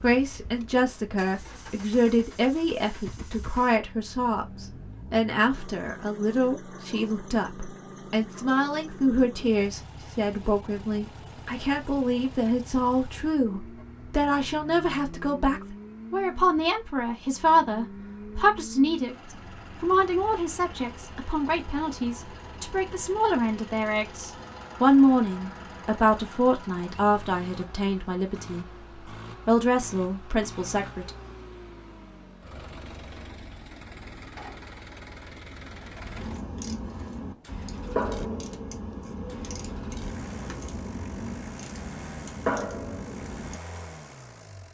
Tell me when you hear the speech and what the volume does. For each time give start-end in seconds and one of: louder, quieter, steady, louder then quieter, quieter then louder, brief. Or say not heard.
0.0-28.6 steady
29.4-31.1 brief.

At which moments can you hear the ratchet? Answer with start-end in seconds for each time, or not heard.
36.1-43.6.